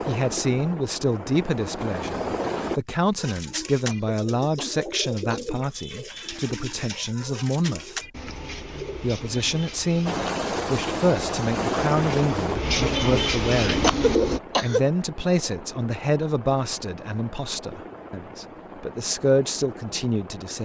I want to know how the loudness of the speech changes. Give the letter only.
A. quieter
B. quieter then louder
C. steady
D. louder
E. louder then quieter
C.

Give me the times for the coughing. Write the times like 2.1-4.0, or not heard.
3.9-5.5, 13.8-14.8.